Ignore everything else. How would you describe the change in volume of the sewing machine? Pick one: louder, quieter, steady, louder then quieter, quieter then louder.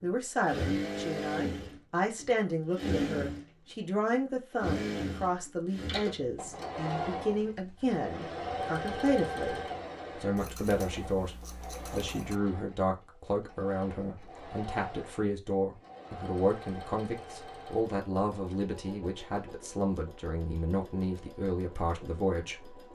quieter.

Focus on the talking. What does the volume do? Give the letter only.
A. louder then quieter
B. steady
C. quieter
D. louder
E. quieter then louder
B.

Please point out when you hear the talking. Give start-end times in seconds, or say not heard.
0.0-22.8.